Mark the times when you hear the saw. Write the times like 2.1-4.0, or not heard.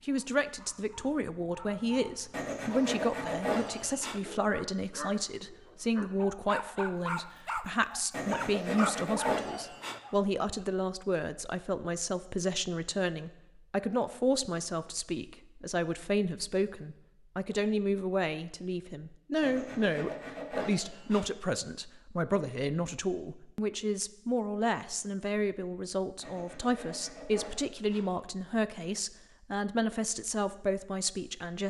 2.3-4.2, 8.1-10.0, 19.4-21.3, 26.2-28.1.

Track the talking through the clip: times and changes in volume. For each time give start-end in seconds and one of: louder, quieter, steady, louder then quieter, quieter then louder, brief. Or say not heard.
0.1-31.6 steady.